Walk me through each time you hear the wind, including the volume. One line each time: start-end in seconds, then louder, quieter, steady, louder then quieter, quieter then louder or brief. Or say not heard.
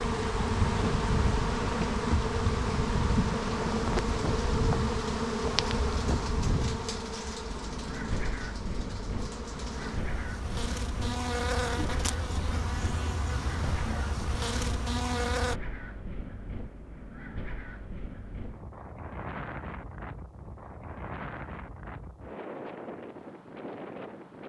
0.0-24.4 quieter.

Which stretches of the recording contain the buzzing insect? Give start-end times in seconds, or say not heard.
0.0-15.6.